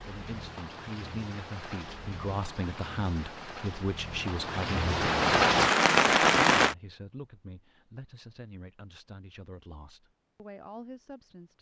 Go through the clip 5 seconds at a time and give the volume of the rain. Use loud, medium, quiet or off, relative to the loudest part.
quiet, loud, off.